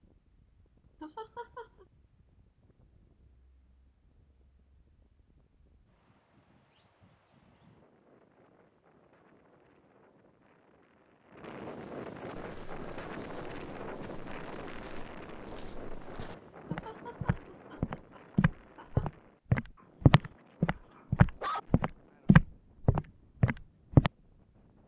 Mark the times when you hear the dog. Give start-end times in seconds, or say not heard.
19.8-21.6.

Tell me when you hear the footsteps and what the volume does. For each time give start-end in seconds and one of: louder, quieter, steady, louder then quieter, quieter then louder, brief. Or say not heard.
12.3-24.1 louder.